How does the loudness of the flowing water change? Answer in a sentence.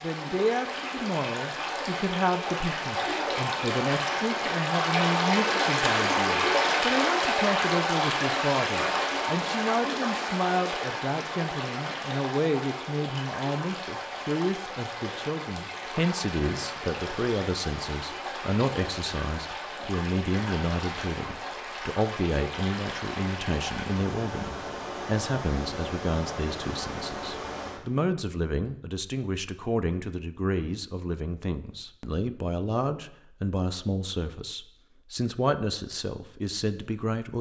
The volume of the flowing water goes down.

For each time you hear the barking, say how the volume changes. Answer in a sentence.
You can't hear the barking here.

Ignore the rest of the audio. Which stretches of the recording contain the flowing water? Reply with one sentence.
You can hear the flowing water from 0.0 to 27.8 s.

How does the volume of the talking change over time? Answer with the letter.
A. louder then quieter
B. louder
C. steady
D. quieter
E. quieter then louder
C.